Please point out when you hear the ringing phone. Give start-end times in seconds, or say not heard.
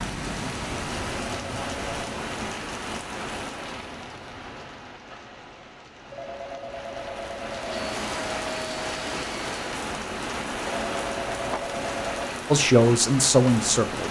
1.2-2.2, 6.1-7.8, 10.6-12.3.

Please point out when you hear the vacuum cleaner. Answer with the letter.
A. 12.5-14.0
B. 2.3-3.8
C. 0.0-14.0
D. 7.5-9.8
D.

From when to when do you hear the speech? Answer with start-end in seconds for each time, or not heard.
12.5-14.0.